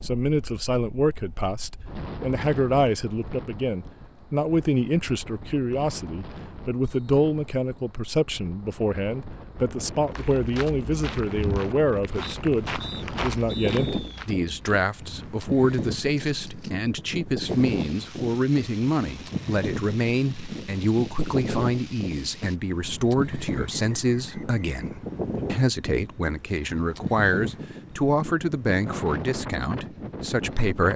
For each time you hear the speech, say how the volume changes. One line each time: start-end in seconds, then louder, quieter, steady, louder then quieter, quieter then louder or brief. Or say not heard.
0.0-30.9 steady.